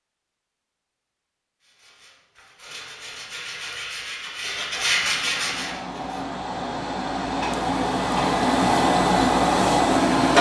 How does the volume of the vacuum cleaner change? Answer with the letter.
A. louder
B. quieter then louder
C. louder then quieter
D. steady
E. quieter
A.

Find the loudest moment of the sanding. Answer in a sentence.
The volume of the sanding peaks at 5 seconds.